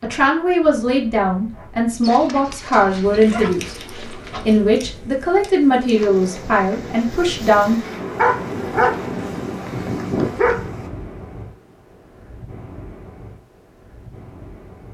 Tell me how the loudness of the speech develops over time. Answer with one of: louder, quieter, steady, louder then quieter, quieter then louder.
steady.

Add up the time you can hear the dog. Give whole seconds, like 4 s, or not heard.
5 s.